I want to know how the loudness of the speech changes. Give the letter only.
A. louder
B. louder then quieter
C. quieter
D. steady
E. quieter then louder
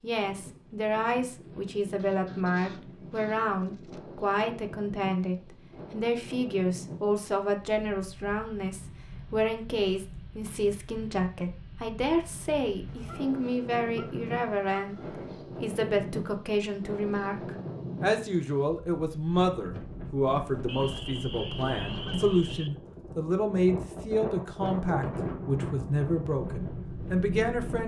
D.